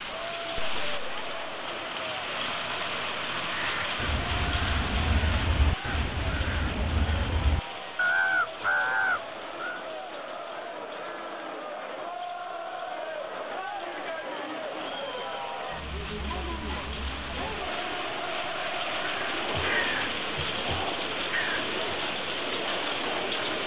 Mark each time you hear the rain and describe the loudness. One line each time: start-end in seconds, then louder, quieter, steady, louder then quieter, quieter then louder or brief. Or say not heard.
0.0-23.6 quieter then louder.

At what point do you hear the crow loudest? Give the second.
8 s.